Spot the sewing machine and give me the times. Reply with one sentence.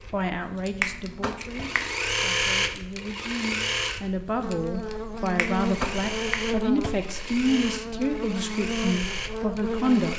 You can hear the sewing machine from 0.0 to 10.1 s.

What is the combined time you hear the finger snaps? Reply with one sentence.
You can hear the finger snaps for 2 seconds altogether.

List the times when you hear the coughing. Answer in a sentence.
You can't hear the coughing here.